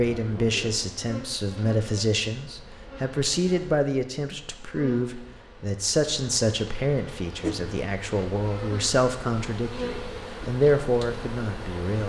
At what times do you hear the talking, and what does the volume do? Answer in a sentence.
You can hear the talking from 0.0 to 12.0 s, at a steady volume.